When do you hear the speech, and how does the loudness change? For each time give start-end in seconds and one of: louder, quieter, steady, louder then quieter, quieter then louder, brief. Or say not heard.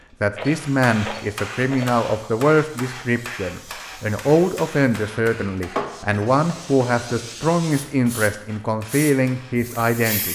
0.2-10.3 steady.